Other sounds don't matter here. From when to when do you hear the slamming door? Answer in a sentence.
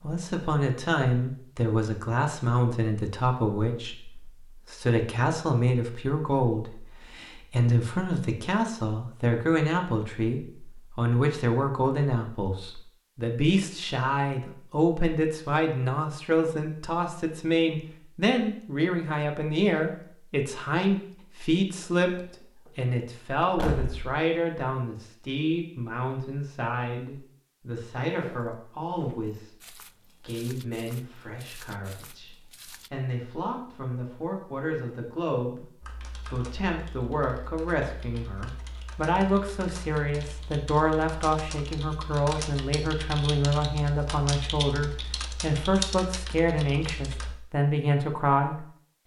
You can hear the slamming door from 22.1 to 22.7 s and from 23.4 to 24.2 s.